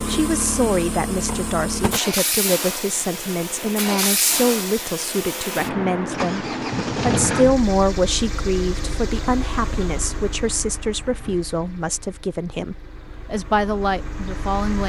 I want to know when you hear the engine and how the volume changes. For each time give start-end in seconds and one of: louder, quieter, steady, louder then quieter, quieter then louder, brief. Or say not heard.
0.0-14.8 quieter.